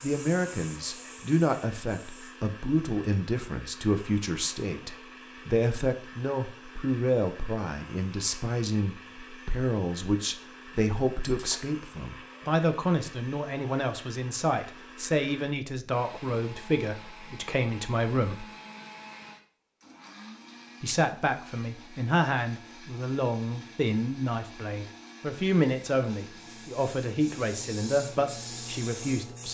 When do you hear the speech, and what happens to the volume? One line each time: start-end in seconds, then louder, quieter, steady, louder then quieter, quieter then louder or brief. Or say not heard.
0.0-18.4 steady
20.8-29.4 steady.